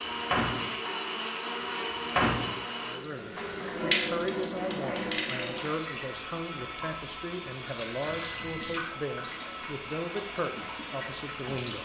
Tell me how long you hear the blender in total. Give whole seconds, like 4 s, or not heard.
3 s.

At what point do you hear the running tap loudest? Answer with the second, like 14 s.
4 s.